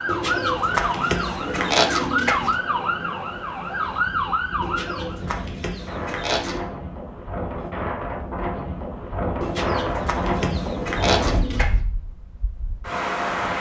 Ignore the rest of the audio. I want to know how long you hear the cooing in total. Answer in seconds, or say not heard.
7 s.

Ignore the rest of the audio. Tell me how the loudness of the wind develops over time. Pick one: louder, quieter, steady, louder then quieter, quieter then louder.
louder.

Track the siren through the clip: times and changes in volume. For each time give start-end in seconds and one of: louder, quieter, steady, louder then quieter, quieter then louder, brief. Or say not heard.
0.0-5.3 steady.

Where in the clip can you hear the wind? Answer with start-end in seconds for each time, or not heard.
0.0-13.5.